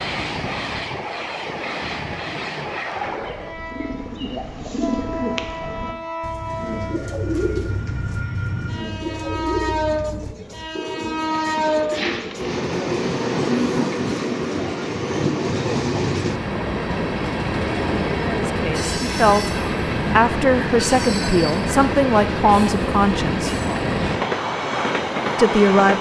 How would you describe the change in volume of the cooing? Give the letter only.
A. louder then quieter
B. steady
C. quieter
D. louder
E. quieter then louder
B.